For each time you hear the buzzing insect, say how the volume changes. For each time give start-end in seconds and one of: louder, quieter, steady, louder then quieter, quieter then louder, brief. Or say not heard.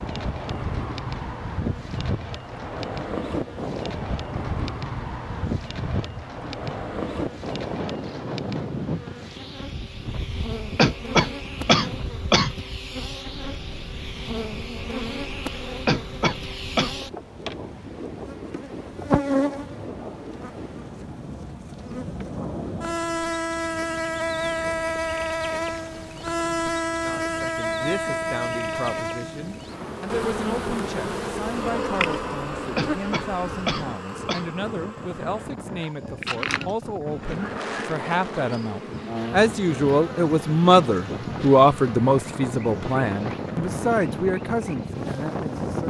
0.0-45.8 louder then quieter.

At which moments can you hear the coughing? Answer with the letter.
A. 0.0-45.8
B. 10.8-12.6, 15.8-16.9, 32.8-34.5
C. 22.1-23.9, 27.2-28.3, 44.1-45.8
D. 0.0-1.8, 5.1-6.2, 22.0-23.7
B.